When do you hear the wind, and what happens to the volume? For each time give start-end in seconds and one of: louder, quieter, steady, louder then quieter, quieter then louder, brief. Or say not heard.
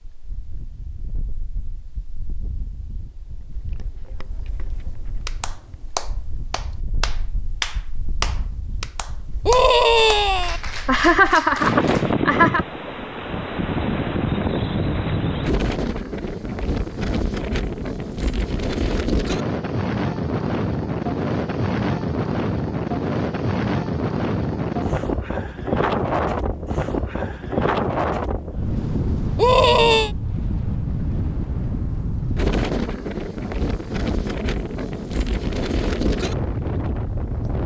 0.0-37.6 louder.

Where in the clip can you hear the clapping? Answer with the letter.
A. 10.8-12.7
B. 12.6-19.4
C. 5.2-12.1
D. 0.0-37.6
C.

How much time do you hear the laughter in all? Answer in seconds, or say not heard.
2 s.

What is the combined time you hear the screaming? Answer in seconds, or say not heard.
2 s.